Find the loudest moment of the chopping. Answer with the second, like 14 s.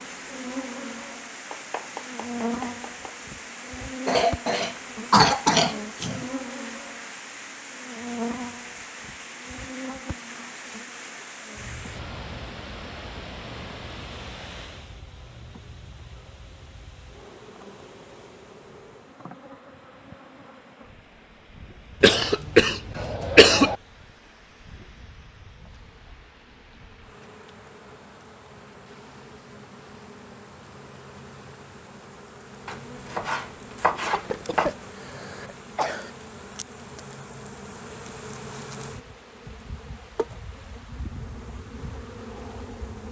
34 s.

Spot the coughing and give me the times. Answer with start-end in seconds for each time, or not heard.
4.0-6.2, 22.0-23.8, 34.1-36.1.